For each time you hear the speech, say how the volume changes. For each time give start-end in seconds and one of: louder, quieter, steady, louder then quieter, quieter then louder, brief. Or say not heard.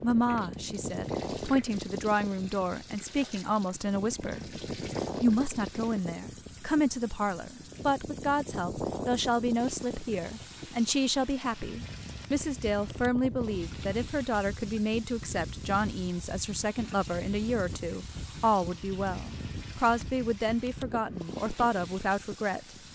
0.0-4.4 louder
5.2-22.6 steady.